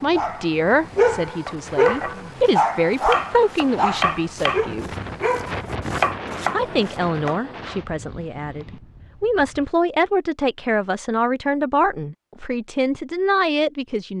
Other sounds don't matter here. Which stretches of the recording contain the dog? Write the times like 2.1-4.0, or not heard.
0.0-5.7.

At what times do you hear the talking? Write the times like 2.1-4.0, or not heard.
0.0-4.9, 6.5-14.1.